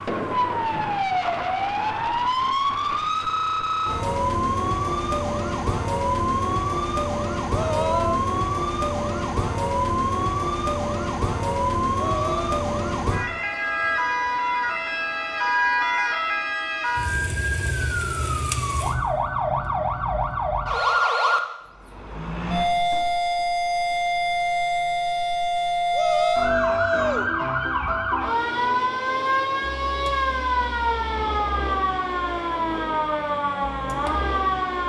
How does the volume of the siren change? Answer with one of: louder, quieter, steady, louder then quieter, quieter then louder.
steady.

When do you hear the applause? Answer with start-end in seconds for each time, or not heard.
not heard.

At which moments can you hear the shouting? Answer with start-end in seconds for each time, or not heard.
7.5-8.2, 11.9-12.6, 25.9-27.3.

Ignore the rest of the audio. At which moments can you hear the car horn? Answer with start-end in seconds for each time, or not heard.
not heard.